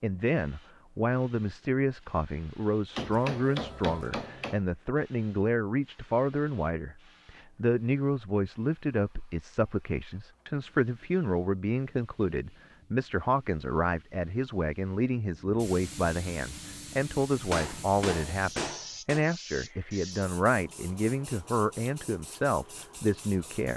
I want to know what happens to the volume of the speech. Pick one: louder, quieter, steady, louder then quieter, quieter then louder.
steady.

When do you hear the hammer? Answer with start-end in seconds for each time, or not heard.
3.0-4.6, 17.5-19.2.